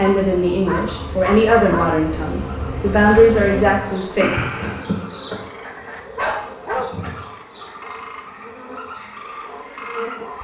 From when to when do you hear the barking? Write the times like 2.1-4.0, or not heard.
0.0-1.9, 6.2-6.9.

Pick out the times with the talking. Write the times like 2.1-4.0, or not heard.
0.0-4.4.